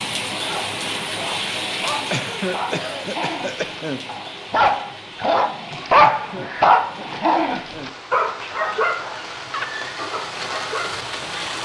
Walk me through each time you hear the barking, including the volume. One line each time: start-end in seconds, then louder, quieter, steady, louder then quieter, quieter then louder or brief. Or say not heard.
0.5-11.0 louder then quieter.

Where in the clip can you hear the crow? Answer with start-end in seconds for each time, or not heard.
not heard.